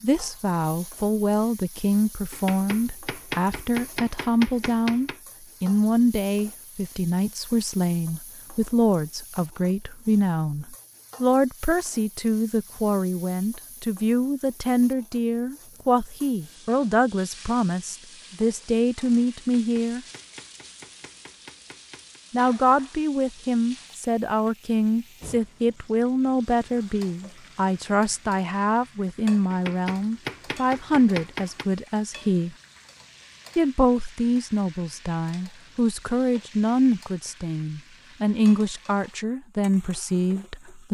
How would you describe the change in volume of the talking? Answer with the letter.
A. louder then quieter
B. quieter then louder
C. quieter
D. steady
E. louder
D.